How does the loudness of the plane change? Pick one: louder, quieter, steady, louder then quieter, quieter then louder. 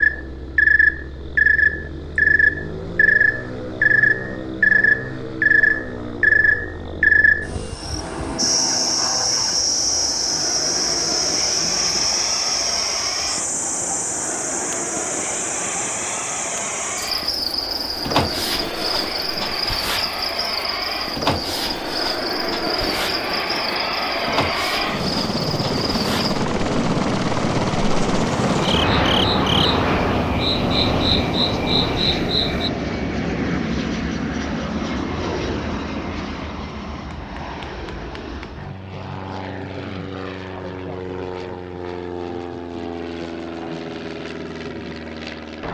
louder then quieter.